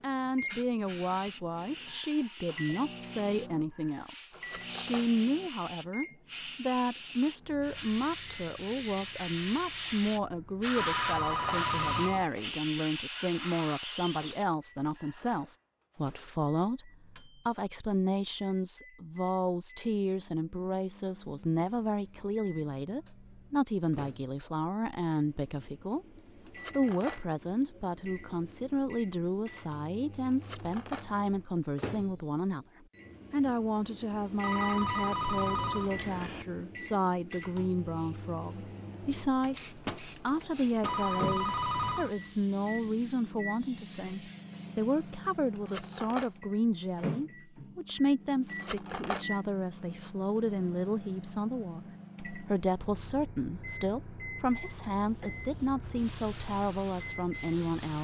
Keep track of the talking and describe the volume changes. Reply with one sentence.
The volume of the talking stays about the same.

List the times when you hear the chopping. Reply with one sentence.
The chopping can't be heard in this clip.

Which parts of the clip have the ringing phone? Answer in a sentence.
You can hear the ringing phone from 10.8 to 12.3 s, from 34.4 to 36.5 s and from 40.9 to 42.1 s.